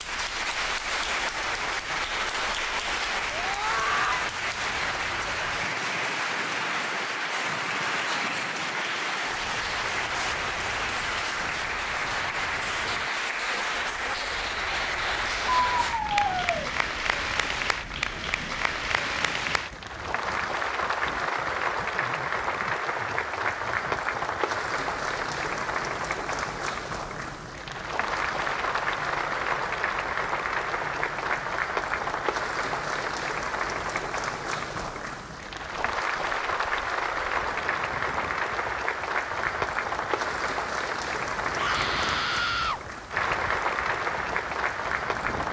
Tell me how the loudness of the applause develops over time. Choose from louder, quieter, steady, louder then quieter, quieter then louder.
steady.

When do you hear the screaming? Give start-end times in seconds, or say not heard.
3.3-4.2, 15.7-16.7, 41.5-42.8.